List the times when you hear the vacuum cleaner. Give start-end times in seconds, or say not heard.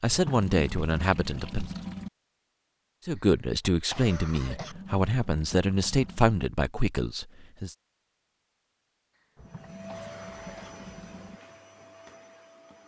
9.4-12.8.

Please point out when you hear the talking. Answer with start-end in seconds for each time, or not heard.
0.0-1.7, 3.0-7.8.